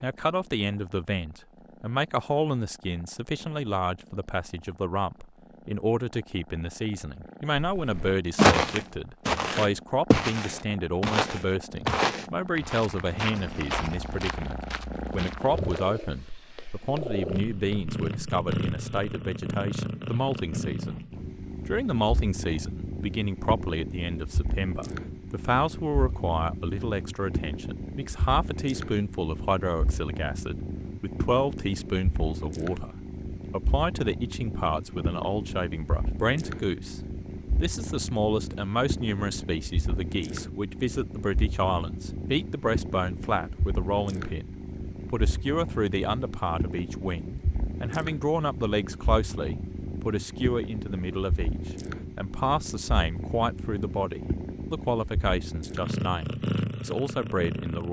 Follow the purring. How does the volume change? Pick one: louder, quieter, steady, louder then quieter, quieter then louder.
louder.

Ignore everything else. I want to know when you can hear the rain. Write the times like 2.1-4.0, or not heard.
not heard.